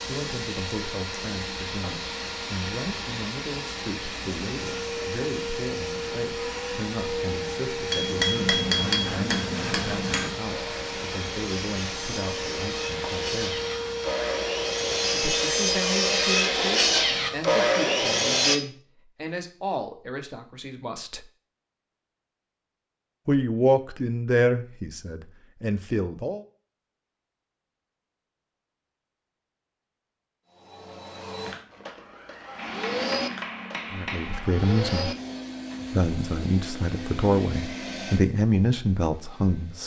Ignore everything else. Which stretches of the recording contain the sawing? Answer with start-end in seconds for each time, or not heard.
8.7-18.6.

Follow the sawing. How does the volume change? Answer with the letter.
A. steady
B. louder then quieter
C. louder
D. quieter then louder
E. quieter
C.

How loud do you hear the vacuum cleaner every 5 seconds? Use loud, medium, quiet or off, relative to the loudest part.
loud, loud, loud, loud, off, off, loud, medium.